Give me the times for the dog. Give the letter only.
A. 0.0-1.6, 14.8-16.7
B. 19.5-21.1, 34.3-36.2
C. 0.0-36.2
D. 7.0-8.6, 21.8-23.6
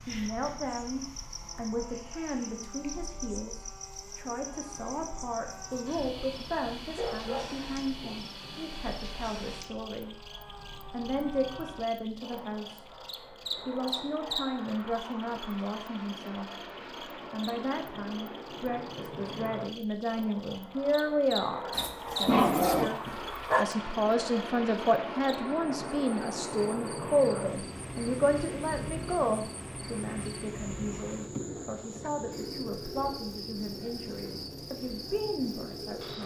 D.